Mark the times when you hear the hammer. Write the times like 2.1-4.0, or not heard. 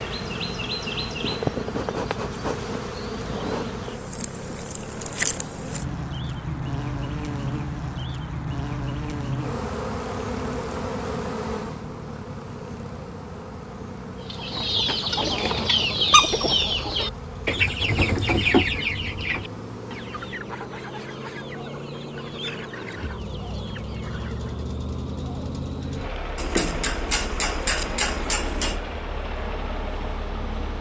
26.4-28.8.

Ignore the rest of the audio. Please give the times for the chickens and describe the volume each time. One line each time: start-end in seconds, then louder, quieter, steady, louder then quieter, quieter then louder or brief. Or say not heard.
14.3-24.6 quieter.